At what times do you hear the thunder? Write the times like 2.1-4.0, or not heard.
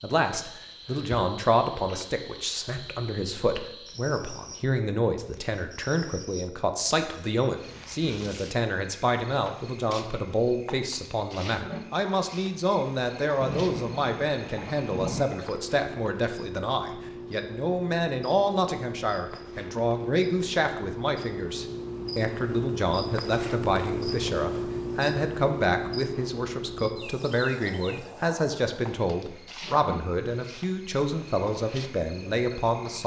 13.4-15.2.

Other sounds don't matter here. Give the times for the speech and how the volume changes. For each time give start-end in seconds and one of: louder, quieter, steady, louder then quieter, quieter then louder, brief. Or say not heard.
0.0-33.0 steady.